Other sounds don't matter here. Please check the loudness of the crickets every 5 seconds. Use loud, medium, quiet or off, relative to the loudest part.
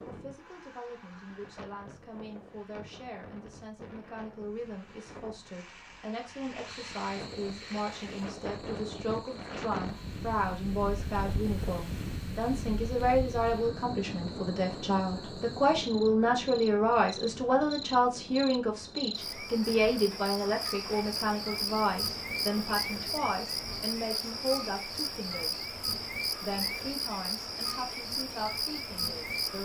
off, quiet, quiet, medium, loud, loud.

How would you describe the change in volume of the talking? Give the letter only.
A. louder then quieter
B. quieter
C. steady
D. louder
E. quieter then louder
A.